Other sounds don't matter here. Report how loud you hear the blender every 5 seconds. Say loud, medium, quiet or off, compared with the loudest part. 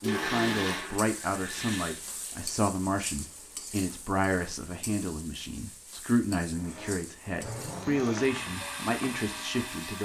loud, medium.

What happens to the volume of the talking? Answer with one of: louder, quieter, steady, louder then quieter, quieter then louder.
steady.